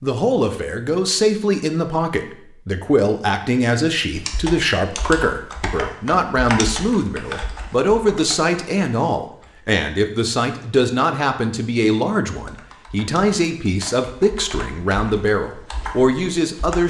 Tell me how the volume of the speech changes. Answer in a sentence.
The loudness of the speech stays about the same.